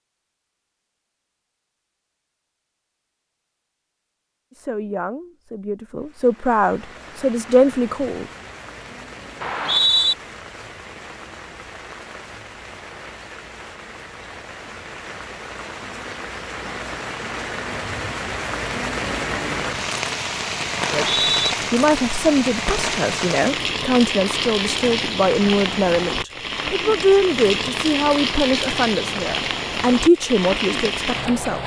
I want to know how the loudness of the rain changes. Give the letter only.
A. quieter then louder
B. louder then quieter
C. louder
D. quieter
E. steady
C.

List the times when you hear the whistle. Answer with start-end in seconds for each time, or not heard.
9.4-10.2, 20.9-21.6.